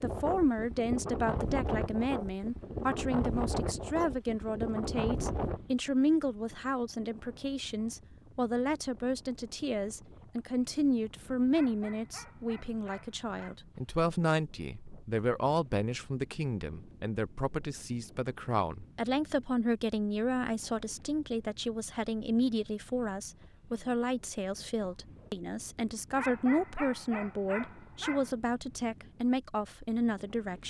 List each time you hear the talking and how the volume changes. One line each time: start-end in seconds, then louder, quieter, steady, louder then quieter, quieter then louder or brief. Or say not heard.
0.0-30.6 steady.